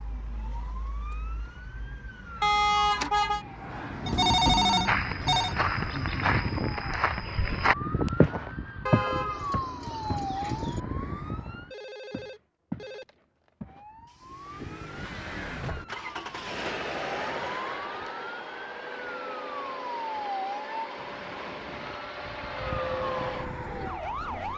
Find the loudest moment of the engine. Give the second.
17 s.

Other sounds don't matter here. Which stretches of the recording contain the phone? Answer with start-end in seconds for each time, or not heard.
4.0-5.5, 11.7-13.5, 20.9-22.1.